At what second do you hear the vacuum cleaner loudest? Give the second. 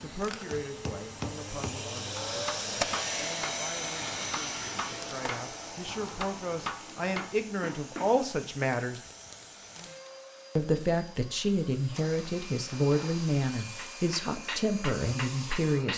3 s.